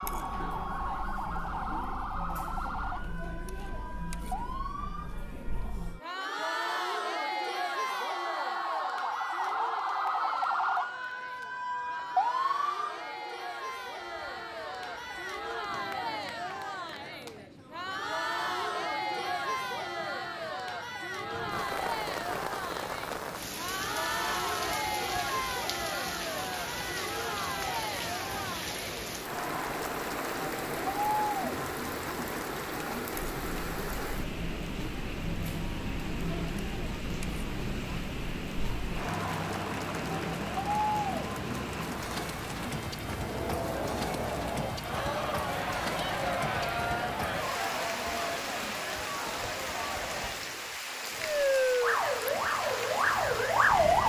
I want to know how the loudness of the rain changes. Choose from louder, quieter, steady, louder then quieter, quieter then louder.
louder.